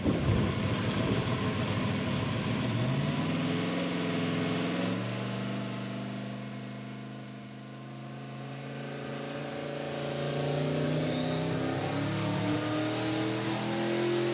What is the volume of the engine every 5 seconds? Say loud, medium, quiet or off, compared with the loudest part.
loud, medium, loud.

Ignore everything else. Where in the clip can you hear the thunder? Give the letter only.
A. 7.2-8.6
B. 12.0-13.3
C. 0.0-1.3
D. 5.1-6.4
C.